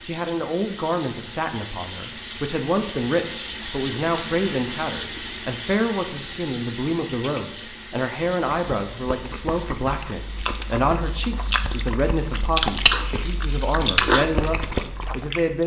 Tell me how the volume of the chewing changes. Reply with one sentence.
The volume of the chewing goes up.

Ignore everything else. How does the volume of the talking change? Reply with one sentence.
The volume of the talking stays about the same.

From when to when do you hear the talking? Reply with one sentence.
You can hear the talking from 0.0 to 15.6 s.